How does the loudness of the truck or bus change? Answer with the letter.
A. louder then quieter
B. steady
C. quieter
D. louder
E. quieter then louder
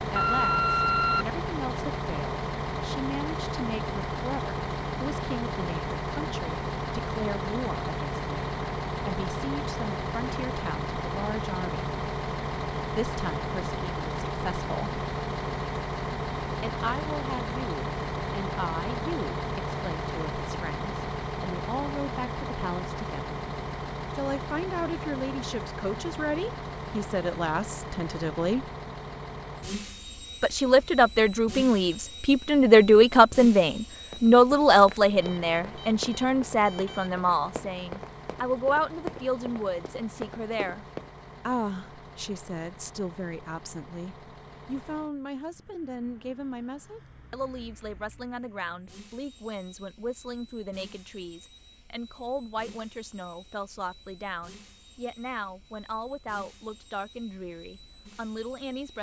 C.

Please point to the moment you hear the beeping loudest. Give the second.
1 s.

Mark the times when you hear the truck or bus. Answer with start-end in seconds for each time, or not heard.
0.0-58.9.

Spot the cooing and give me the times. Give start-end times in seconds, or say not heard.
not heard.